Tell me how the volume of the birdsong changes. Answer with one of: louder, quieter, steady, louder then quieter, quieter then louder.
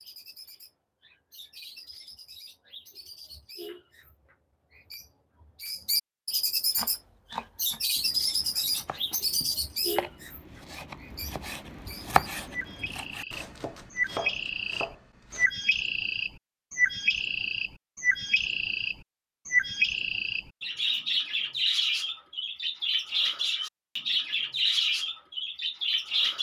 louder.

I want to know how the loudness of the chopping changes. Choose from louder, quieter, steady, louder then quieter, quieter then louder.
louder then quieter.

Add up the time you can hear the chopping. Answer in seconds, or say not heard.
9 s.